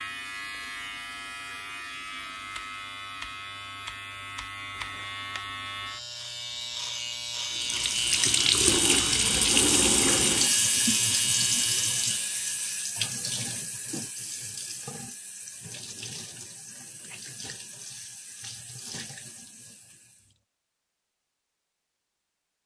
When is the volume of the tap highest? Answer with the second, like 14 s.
10 s.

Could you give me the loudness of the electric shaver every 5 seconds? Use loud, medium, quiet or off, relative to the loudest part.
medium, loud, loud, off, off.